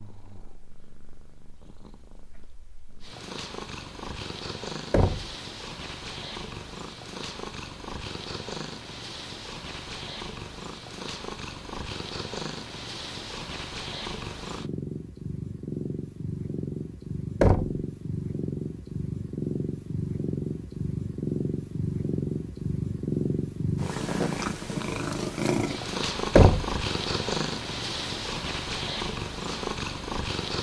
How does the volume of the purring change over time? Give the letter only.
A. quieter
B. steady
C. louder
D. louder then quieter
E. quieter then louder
C.